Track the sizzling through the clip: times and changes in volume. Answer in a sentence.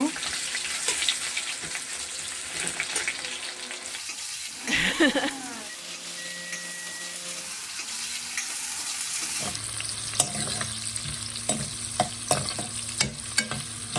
The sizzling can be heard from 0.0 to 13.9 s, getting quieter then louder.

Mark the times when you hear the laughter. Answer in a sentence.
You can hear the laughter from 4.7 to 5.3 s.